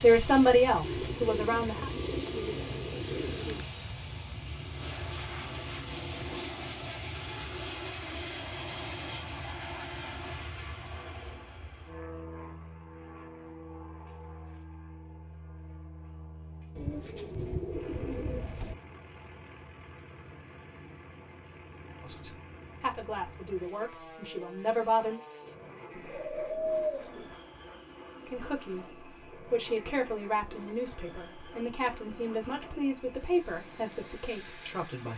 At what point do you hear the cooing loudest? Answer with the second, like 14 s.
27 s.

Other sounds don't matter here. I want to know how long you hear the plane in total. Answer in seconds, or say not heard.
35 s.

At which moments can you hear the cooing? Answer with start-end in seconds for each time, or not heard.
0.8-3.6, 16.8-18.8, 25.9-27.4.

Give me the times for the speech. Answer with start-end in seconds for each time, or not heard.
0.0-1.9, 22.0-25.2, 28.2-35.1.